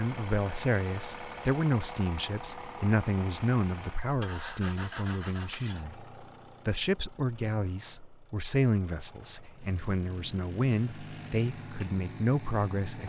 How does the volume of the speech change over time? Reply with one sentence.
The volume of the speech stays about the same.